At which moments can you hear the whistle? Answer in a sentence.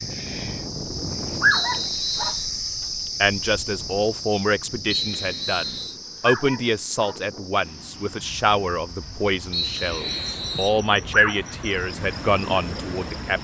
The whistle can be heard from 1.5 to 2.5 s, from 4.9 to 6.0 s and from 9.5 to 10.8 s.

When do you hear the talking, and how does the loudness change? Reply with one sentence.
You can hear the talking from 3.2 to 13.3 s, at a steady volume.